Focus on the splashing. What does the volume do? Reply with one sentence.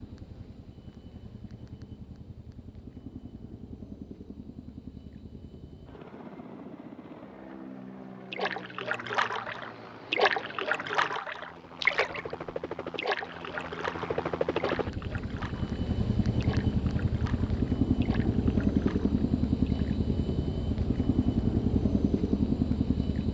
The volume of the splashing goes down.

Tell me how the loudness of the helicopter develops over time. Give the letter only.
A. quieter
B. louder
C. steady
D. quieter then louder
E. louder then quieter
B.